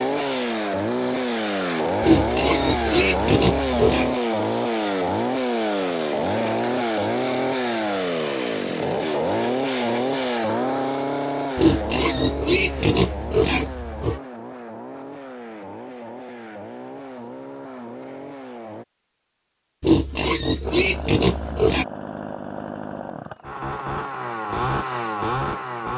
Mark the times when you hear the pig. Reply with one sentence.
You can hear the pig from 2.0 to 4.1 s, from 11.6 to 14.2 s and from 19.8 to 21.9 s.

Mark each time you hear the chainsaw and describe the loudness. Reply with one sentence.
The chainsaw can be heard from 0.0 to 18.9 s, getting quieter; and from 20.6 to 25.9 s, getting louder.